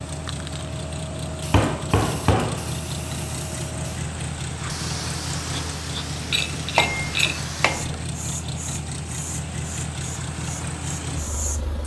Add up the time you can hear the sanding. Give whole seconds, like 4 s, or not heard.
not heard.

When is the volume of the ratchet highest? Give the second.
7 s.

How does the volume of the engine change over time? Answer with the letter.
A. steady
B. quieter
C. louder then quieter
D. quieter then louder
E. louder
A.